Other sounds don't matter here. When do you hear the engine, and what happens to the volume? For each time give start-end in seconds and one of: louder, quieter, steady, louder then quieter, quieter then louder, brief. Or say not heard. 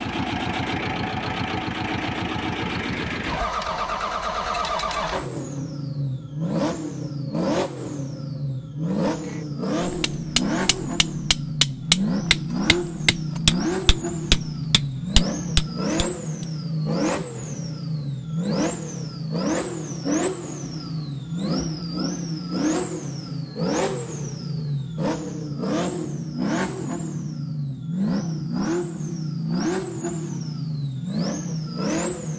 0.0-32.3 steady.